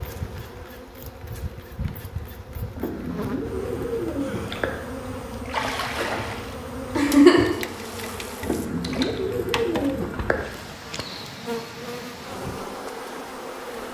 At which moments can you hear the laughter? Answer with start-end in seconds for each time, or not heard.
7.0-7.5.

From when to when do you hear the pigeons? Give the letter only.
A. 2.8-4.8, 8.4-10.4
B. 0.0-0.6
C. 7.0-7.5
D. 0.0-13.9
A.